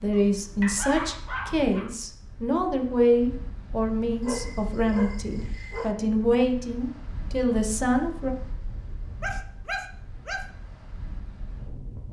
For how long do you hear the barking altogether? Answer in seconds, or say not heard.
5 s.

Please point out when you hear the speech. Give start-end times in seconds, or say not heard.
0.0-8.3.